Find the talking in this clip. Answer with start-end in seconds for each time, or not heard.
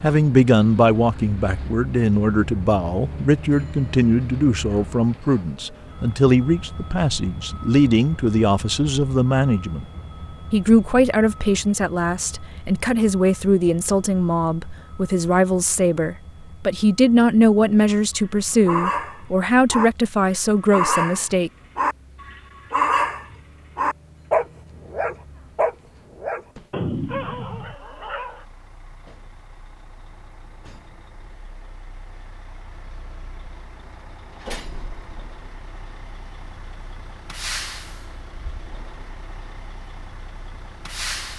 0.0-9.8, 10.5-21.5.